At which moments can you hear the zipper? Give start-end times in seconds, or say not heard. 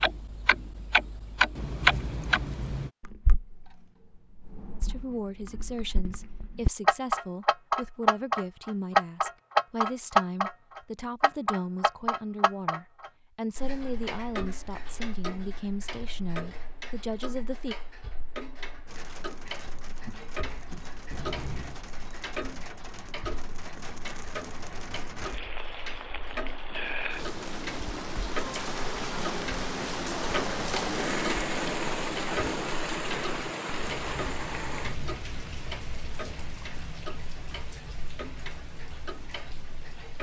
1.6-2.9, 21.1-21.8, 33.8-35.2.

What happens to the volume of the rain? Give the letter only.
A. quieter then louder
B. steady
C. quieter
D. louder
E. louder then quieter
E.